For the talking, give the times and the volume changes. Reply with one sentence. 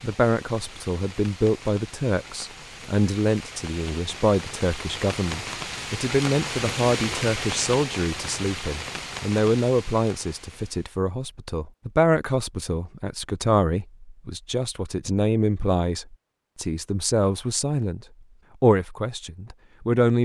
The talking can be heard from 0.0 to 18.0 s, at a steady volume; and briefly from 18.6 to 20.1 s.